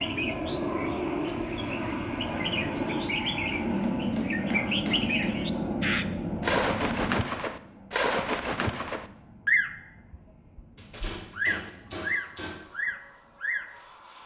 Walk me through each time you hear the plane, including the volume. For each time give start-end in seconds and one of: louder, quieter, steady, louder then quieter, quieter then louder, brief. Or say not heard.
0.0-14.2 quieter.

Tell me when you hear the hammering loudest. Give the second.
5 s.